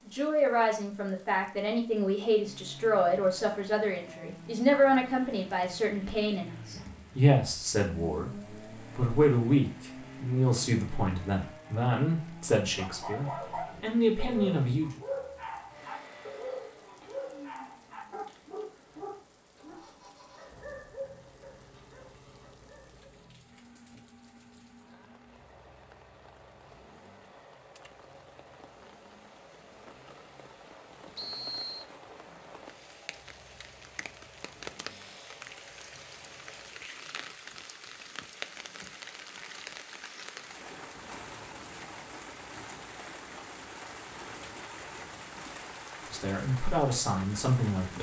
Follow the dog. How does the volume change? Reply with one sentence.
The volume of the dog goes down.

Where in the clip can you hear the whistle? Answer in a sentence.
The whistle can be heard from 31.1 to 31.9 s.